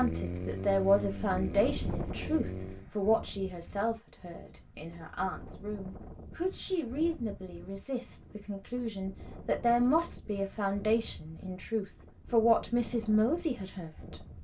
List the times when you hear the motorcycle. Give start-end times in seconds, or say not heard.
0.0-2.9.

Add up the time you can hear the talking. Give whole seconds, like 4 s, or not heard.
14 s.